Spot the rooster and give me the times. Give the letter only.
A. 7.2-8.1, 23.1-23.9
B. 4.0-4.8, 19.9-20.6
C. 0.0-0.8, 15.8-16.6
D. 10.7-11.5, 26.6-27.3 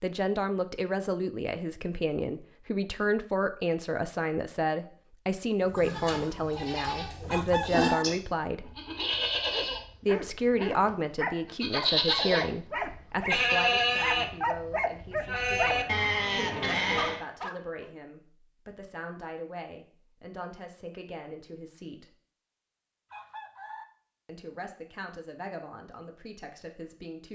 A.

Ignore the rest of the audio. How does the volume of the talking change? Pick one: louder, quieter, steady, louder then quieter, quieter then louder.
quieter.